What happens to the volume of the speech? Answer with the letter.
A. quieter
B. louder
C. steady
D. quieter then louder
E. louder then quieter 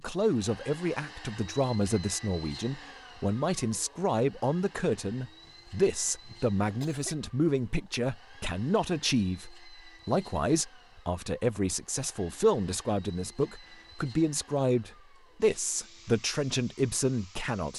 C.